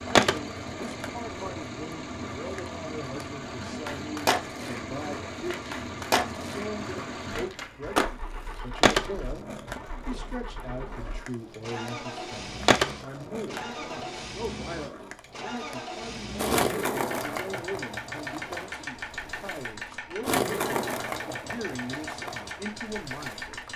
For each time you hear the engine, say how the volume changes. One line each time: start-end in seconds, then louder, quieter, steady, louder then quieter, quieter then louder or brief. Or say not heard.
0.0-23.7 steady.